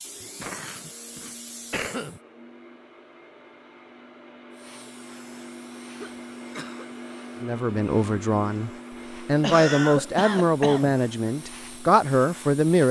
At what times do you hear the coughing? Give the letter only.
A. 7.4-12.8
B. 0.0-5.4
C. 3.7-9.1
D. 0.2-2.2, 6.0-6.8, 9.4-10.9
D.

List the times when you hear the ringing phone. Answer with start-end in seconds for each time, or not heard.
not heard.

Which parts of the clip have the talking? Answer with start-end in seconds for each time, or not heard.
7.4-12.8.